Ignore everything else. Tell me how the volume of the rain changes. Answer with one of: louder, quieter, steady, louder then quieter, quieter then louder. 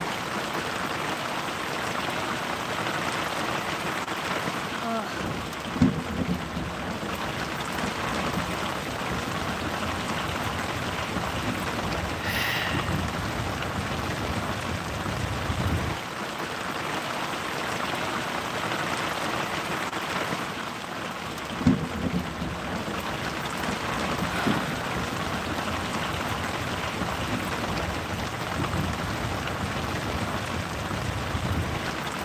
steady.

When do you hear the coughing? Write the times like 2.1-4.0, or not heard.
not heard.